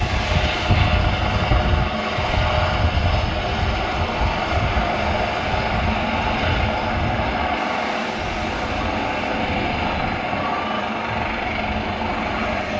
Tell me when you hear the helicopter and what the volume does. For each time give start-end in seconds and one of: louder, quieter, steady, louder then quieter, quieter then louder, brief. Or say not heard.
0.0-12.7 steady.